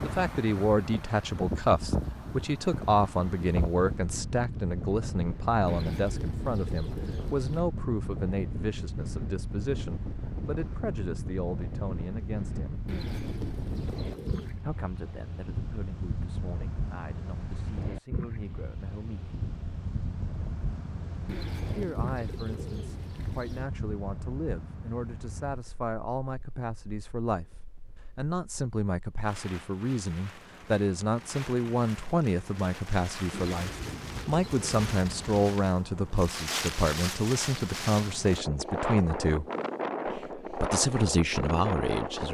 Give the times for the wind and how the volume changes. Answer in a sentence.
You can hear the wind from 0.0 to 42.2 s, getting quieter then louder.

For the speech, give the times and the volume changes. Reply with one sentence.
You can hear the speech from 0.0 to 12.8 s, getting quieter; from 14.6 to 19.4 s, at a steady volume; from 21.6 to 39.5 s, getting louder; and briefly from 40.1 to 42.2 s.